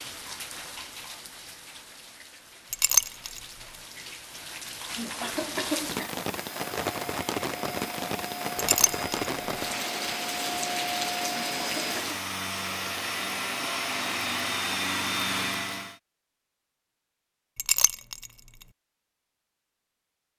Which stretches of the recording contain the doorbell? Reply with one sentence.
You can't hear the doorbell here.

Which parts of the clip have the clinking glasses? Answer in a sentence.
You can hear the clinking glasses from 2.7 to 3.4 s, from 8.6 to 9.2 s and from 17.6 to 18.3 s.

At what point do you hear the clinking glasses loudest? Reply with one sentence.
The loudest moment of the clinking glasses is at 3 seconds.